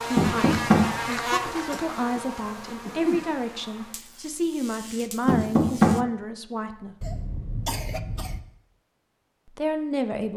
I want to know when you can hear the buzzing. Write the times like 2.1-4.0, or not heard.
0.0-6.0.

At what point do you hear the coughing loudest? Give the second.
3 s.